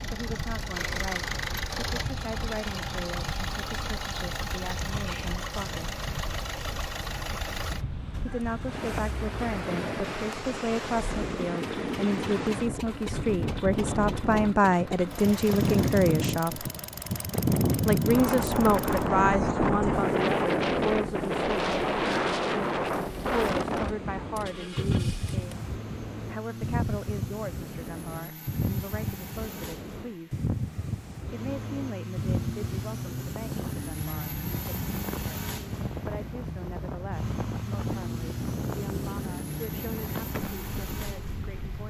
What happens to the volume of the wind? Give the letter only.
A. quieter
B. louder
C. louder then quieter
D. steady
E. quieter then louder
C.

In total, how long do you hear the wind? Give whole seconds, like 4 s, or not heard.
42 s.